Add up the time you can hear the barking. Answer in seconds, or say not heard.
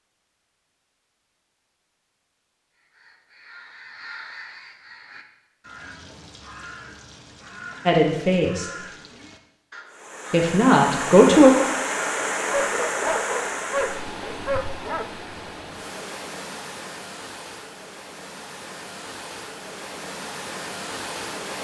3 s.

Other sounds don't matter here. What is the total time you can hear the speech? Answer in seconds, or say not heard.
2 s.